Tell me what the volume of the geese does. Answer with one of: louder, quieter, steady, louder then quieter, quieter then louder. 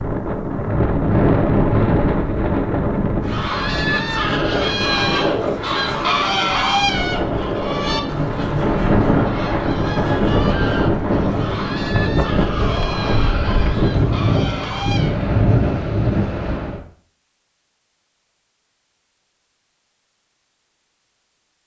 quieter.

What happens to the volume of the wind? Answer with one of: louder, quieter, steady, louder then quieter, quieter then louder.
quieter then louder.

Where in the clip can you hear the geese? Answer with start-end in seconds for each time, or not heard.
3.2-15.2.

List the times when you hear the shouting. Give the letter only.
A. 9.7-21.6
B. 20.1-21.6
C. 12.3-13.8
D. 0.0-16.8
C.